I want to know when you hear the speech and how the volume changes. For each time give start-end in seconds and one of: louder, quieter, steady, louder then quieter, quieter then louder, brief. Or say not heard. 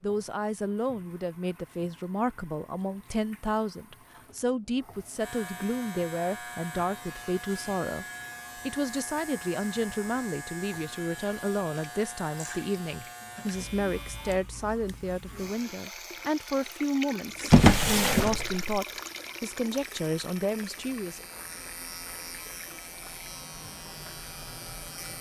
0.0-21.2 steady.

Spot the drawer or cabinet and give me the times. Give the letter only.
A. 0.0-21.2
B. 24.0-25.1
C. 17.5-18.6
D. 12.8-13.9
C.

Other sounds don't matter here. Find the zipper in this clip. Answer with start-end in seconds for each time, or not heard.
not heard.